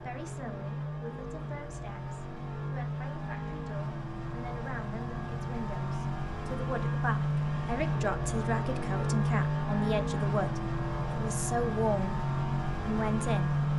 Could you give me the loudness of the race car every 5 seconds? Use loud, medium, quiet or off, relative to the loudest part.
medium, loud, loud.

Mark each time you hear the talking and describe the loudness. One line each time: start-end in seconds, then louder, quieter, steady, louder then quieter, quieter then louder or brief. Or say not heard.
0.0-12.2 louder
12.8-13.7 brief.